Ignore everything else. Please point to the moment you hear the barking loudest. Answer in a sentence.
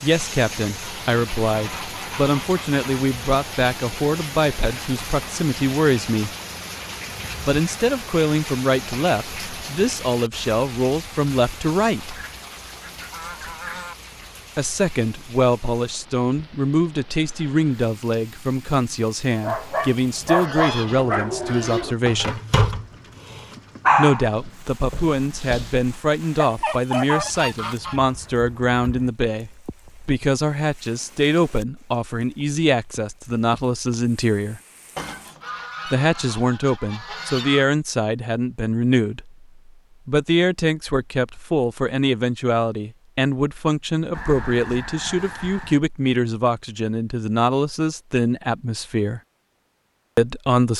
The volume of the barking peaks at 24 seconds.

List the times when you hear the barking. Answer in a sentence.
The barking can be heard from 19.4 to 27.3 s.